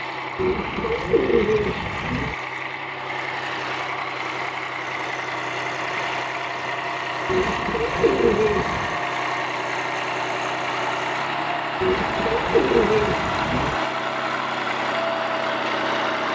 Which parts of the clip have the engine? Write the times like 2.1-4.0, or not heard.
0.0-16.3.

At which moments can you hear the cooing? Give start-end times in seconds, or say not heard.
0.3-2.4, 7.2-8.9, 11.8-13.8.